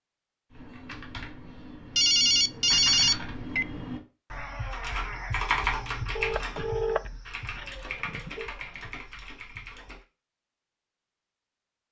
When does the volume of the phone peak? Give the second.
3 s.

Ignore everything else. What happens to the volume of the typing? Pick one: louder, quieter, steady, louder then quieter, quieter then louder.
louder then quieter.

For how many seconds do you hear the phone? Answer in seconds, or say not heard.
4 s.